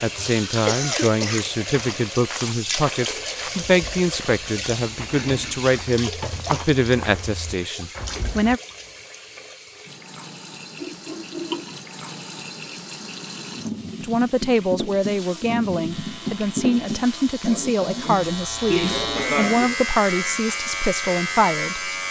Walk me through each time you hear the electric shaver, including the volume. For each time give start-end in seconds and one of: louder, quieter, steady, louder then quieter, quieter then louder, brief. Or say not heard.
15.9-22.0 louder.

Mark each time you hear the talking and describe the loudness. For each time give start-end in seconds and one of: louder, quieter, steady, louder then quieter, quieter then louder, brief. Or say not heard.
0.0-8.6 steady
14.0-21.9 steady.